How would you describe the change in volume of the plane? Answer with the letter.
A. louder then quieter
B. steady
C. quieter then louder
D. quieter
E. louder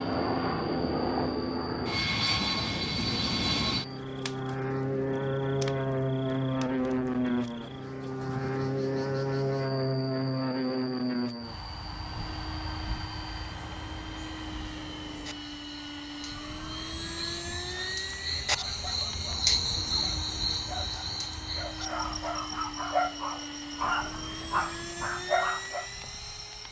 D.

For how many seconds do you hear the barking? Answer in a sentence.
The barking can be heard for 8 seconds in total.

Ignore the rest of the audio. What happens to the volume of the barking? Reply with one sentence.
The volume of the barking goes up.